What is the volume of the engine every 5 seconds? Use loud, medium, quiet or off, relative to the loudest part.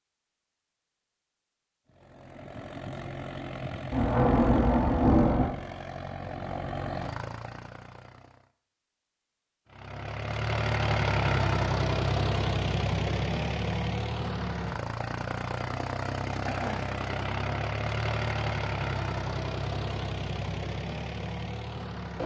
medium, medium, loud, loud, medium.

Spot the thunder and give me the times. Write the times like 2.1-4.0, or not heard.
3.9-5.5.